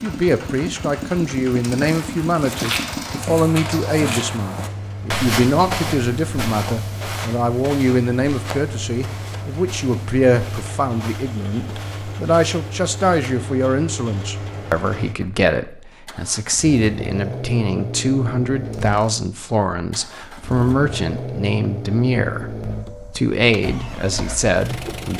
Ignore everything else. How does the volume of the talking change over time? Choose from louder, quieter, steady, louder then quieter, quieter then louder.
steady.